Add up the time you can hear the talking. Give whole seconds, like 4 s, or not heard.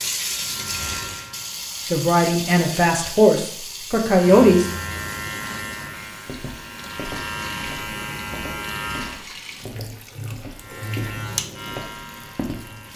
3 s.